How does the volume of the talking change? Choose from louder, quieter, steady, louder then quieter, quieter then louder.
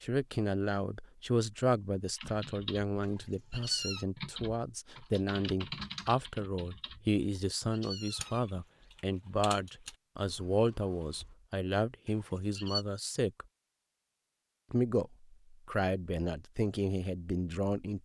steady.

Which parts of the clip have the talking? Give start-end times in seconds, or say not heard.
0.0-13.4, 14.7-18.0.